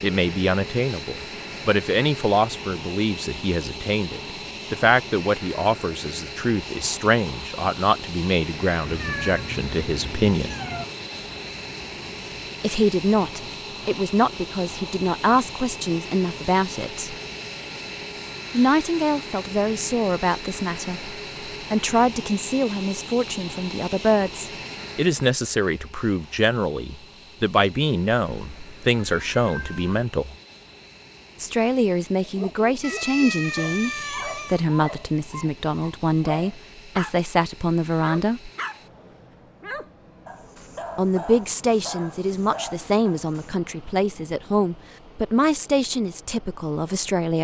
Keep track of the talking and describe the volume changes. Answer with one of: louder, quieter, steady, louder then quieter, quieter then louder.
steady.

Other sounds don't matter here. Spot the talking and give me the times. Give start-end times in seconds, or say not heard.
0.0-10.6, 12.6-17.1, 18.5-30.4, 31.4-38.5, 41.0-47.3.